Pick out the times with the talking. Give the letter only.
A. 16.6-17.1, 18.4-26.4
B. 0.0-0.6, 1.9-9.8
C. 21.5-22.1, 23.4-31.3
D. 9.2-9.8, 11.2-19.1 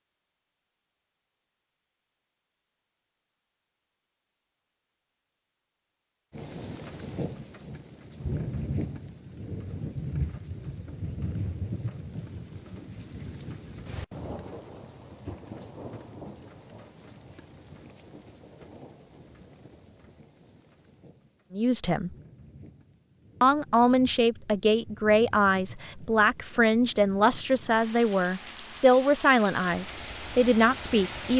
C.